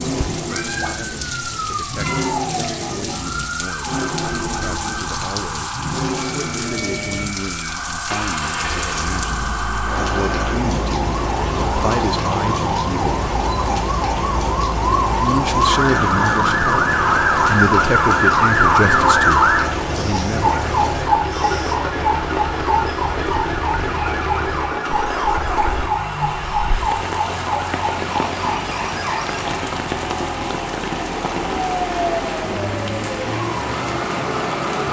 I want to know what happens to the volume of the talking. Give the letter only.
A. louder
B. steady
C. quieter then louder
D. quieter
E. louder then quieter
A.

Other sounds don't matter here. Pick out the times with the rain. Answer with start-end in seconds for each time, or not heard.
0.0-34.8.